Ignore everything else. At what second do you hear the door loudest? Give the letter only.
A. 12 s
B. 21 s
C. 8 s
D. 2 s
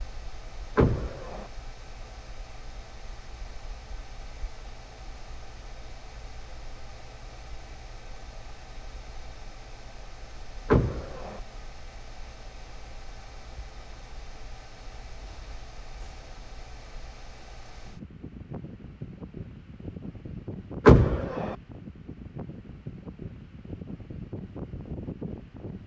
B.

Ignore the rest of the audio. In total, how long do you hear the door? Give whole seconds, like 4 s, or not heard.
2 s.